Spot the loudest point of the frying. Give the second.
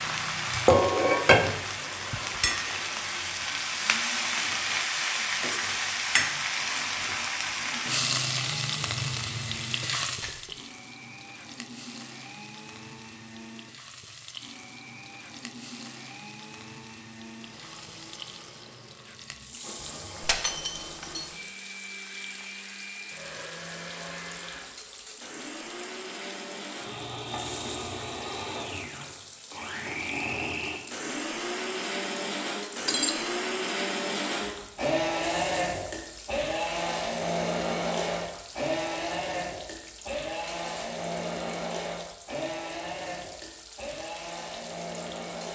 1 s.